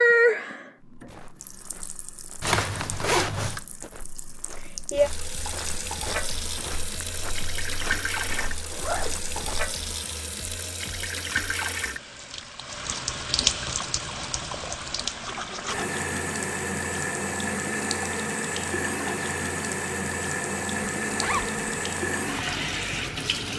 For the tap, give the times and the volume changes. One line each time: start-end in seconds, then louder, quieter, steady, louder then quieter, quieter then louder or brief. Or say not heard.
0.0-23.5 louder.